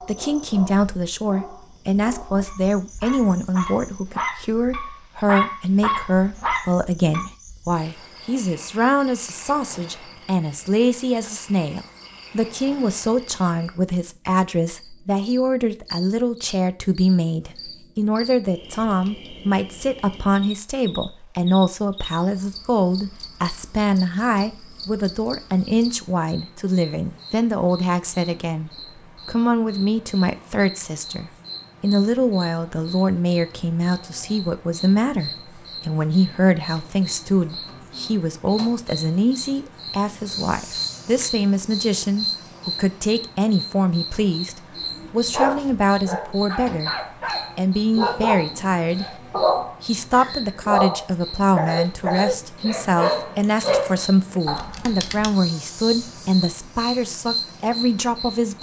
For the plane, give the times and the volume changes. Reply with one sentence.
The plane can't be heard in this clip.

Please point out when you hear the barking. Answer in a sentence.
The barking can be heard from 0.0 to 7.2 s and from 44.7 to 55.3 s.